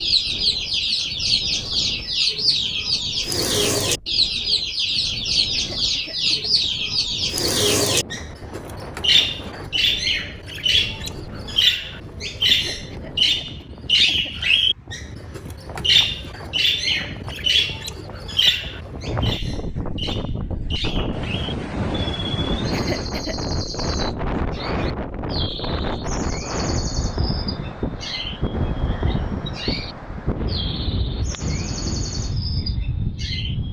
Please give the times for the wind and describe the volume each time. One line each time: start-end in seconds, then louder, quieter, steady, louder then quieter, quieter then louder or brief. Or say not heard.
0.0-33.6 louder.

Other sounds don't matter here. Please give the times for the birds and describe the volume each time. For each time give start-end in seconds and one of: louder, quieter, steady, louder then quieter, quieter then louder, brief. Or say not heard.
0.0-33.6 quieter.